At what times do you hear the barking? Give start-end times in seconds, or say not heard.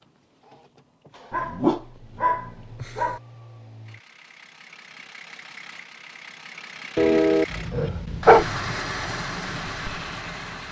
1.3-3.2, 7.0-8.4.